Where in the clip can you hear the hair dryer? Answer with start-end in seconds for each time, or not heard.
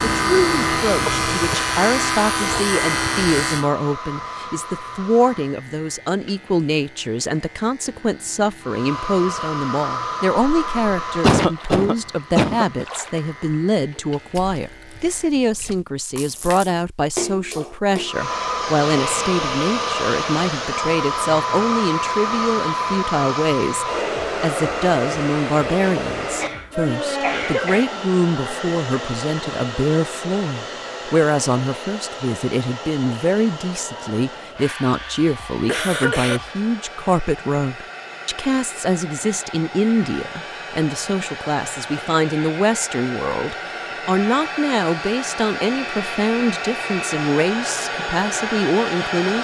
0.0-5.6, 8.6-13.6, 18.1-49.3.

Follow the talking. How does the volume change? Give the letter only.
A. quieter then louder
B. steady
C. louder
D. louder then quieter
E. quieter
B.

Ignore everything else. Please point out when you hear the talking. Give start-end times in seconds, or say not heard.
0.0-49.3.